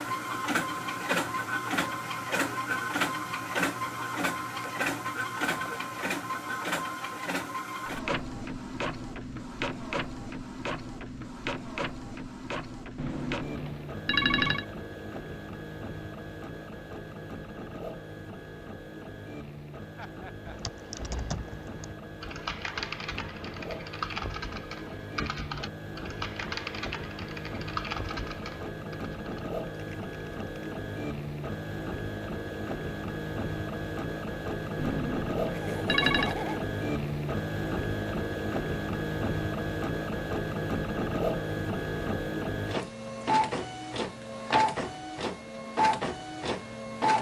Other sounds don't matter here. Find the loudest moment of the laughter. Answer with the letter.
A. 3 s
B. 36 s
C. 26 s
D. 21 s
B.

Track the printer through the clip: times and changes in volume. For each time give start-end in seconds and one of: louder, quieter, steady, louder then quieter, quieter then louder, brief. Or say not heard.
0.0-47.1 quieter then louder.